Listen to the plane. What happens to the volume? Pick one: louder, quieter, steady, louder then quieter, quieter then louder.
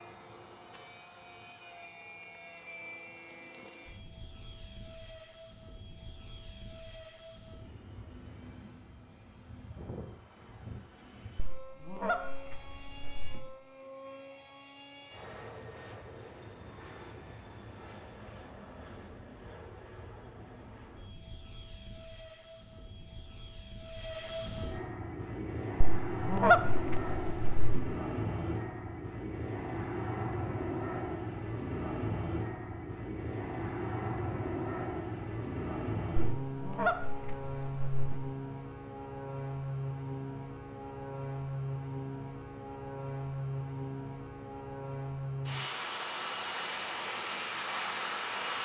louder.